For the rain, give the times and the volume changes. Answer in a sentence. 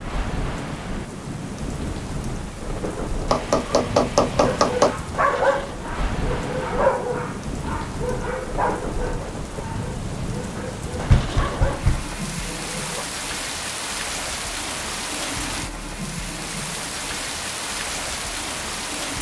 The rain can be heard from 0.0 to 19.1 s, at a steady volume.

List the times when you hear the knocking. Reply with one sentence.
The knocking can be heard from 3.3 to 5.0 s and from 11.1 to 12.1 s.